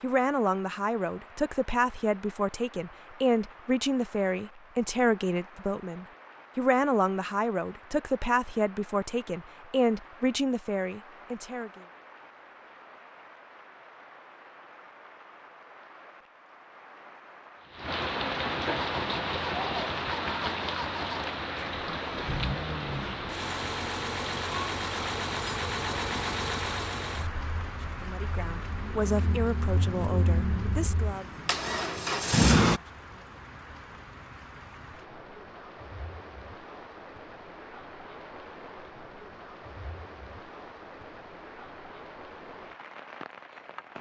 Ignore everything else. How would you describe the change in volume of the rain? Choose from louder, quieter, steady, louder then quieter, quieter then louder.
louder then quieter.